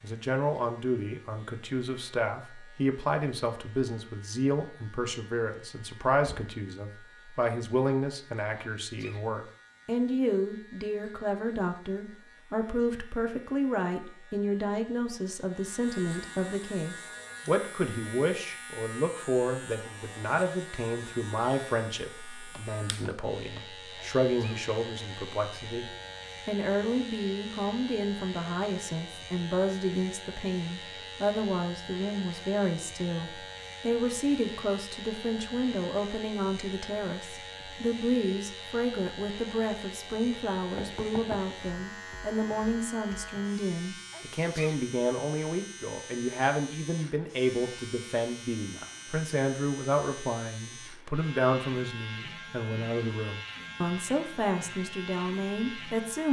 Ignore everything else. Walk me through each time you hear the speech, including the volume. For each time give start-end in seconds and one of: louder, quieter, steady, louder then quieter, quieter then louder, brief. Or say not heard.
0.0-56.2 steady.